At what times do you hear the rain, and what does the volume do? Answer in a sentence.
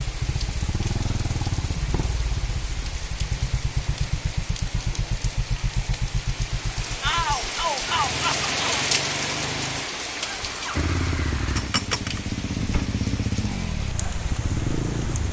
The rain can be heard from 0.0 to 15.2 s, getting louder then quieter.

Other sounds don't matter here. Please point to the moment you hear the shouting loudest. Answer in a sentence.
The loudest moment of the shouting is at 7 seconds.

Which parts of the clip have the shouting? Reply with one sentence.
You can hear the shouting from 7.0 to 8.8 s.